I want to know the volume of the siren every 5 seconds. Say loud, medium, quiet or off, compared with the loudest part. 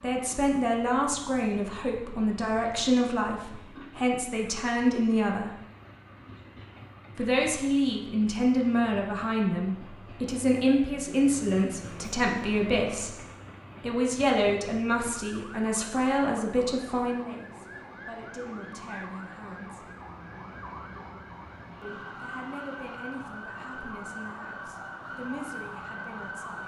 off, off, off, medium, loud, loud.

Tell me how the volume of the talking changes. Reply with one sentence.
The volume of the talking goes down.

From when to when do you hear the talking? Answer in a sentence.
The talking can be heard from 0.0 to 5.5 s, from 7.2 to 13.2 s, from 13.8 to 19.9 s and from 21.8 to 26.6 s.